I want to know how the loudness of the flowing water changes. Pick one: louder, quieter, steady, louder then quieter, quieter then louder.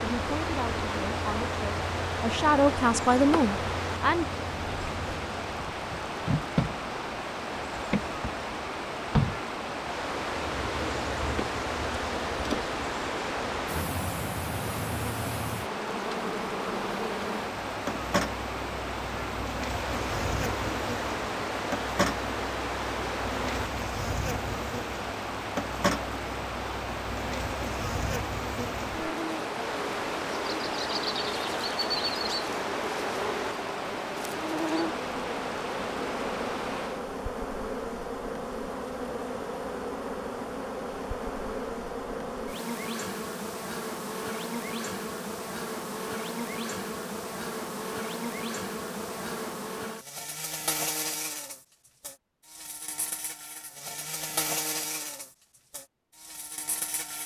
steady.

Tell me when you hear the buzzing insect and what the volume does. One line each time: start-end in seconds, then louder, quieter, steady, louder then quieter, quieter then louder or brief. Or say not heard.
0.0-57.2 steady.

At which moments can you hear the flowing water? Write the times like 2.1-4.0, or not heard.
0.0-37.1.